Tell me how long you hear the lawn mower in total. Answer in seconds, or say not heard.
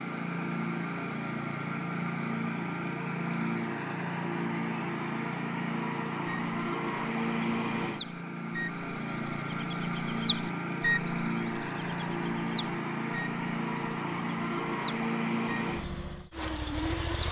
17 s.